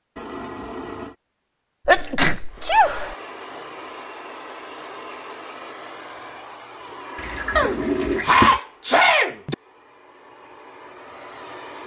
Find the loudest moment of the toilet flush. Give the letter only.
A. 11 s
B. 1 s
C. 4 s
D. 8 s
D.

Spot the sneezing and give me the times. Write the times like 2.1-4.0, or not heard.
1.9-3.1, 7.5-9.6.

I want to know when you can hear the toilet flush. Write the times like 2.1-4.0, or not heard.
0.1-1.1, 7.2-8.6.